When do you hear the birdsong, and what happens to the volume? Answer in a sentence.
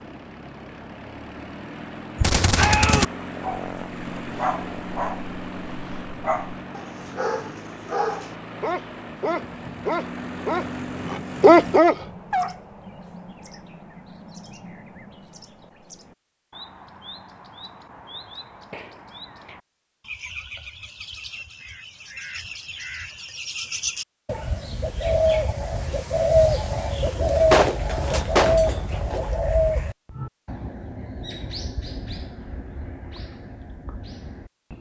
You can hear the birdsong from 11.7 to 34.7 s, getting louder then quieter.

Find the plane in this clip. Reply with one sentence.
You can hear the plane from 0.0 to 11.8 s.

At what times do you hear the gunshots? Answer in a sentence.
You can hear the gunshots from 2.1 to 3.0 s and from 27.4 to 29.2 s.